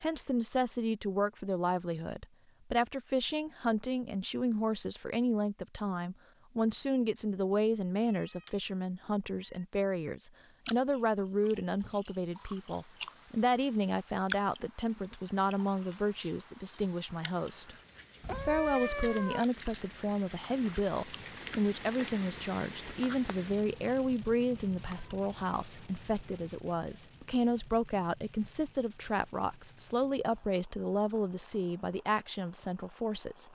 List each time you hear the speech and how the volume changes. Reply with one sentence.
You can hear the speech from 0.0 to 33.5 s, at a steady volume.